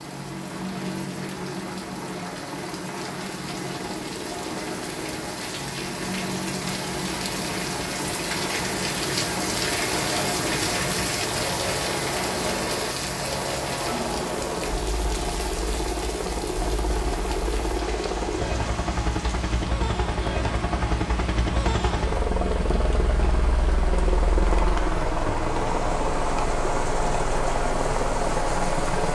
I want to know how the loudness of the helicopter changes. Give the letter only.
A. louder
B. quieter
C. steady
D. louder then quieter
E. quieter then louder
A.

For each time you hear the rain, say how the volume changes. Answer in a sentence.
You can hear the rain from 0.0 to 29.1 s, getting louder then quieter.